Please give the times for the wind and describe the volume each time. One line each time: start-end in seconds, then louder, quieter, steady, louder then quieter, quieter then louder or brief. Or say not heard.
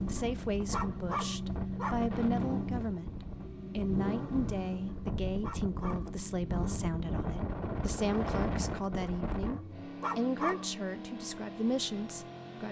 0.0-9.6 louder.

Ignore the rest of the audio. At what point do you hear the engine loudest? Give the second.
2 s.